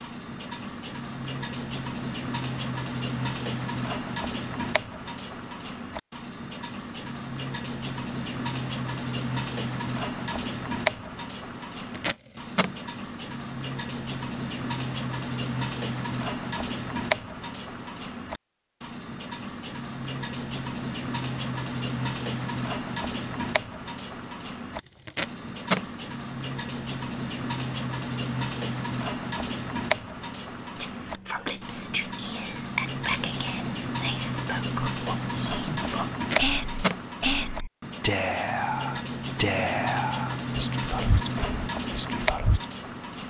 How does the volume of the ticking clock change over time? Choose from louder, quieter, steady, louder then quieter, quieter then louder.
steady.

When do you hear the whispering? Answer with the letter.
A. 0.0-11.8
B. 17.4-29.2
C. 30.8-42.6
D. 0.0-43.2
C.